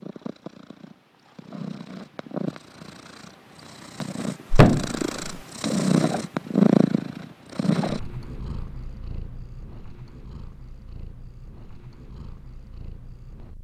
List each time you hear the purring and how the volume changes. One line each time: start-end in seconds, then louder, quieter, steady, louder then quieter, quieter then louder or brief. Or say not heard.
0.0-13.5 louder then quieter.